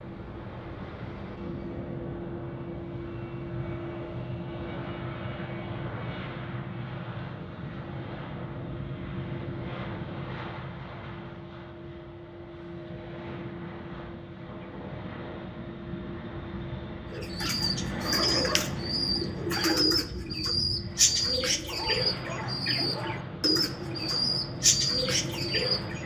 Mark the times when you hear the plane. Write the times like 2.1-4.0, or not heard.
0.0-26.0.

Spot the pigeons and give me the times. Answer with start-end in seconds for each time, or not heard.
17.1-26.0.